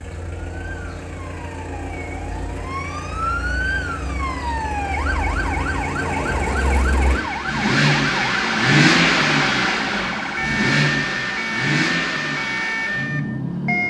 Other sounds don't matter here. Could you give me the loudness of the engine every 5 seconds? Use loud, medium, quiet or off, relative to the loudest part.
quiet, loud, loud.